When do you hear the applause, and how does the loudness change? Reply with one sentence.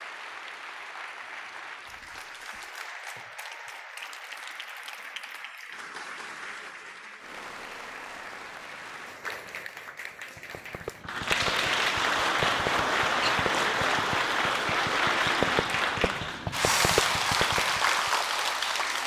The applause can be heard from 0.0 to 19.0 s, getting louder.